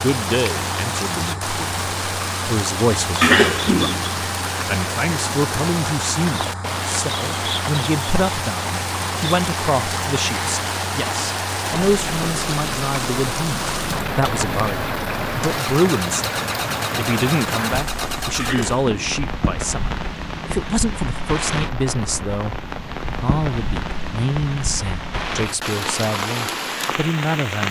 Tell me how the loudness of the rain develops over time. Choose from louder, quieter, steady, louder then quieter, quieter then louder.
steady.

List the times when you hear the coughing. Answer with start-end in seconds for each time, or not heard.
3.2-4.0, 18.4-19.1.